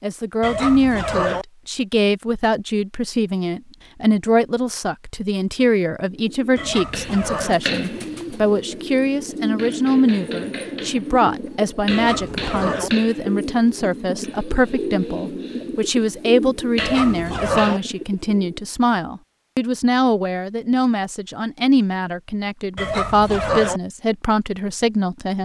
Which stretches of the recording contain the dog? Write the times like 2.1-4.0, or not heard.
0.4-1.4, 6.5-7.6, 11.8-12.9, 16.8-17.8, 22.8-23.8.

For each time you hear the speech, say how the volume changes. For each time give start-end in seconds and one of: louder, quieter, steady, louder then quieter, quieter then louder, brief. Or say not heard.
0.0-25.4 steady.